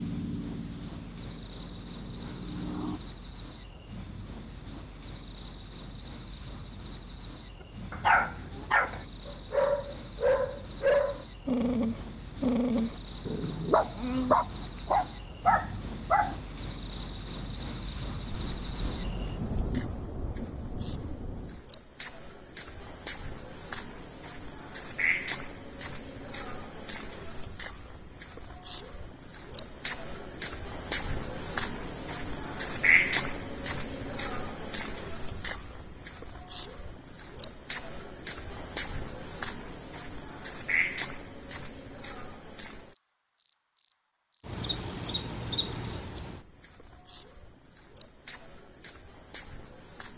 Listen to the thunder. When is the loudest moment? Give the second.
20 s.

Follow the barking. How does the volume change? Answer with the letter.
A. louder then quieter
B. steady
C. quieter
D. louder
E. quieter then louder
B.